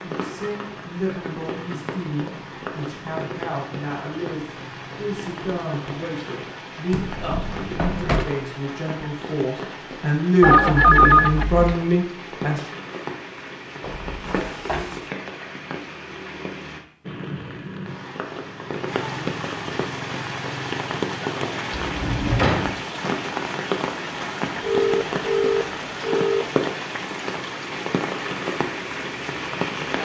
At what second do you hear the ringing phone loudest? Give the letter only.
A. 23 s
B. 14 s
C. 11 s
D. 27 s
C.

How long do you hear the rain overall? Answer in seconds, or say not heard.
30 s.